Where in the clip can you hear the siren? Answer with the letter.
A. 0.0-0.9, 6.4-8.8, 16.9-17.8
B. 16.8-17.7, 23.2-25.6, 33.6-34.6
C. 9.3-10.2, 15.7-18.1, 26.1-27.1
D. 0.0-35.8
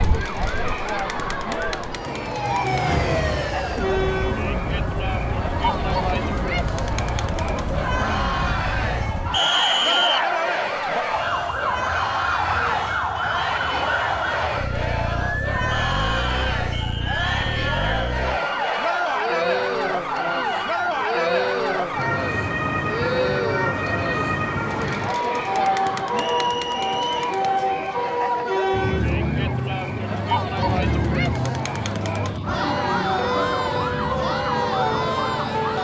D.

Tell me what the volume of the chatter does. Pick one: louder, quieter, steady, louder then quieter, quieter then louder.
steady.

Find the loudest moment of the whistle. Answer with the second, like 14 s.
10 s.